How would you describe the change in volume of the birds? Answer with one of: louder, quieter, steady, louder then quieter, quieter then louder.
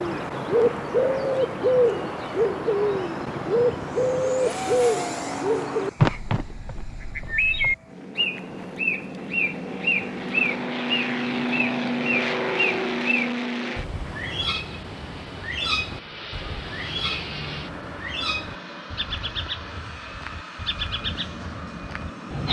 quieter.